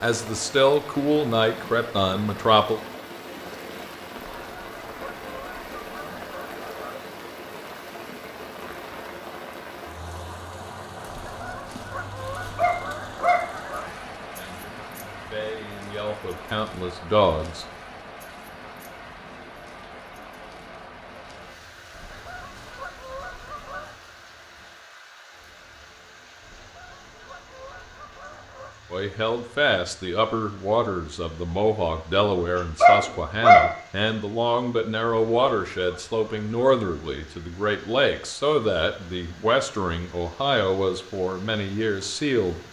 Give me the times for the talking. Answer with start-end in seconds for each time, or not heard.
0.0-2.8, 14.3-17.6, 28.9-42.6.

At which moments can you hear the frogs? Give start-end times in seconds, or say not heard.
not heard.